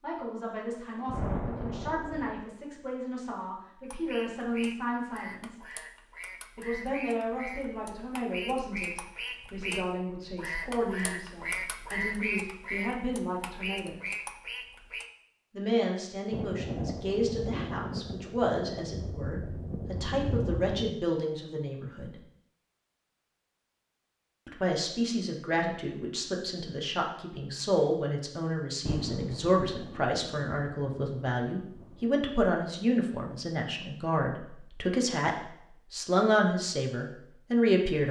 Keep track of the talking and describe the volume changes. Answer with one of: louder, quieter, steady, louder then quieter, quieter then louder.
louder.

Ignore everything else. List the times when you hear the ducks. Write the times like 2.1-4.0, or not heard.
3.8-15.1.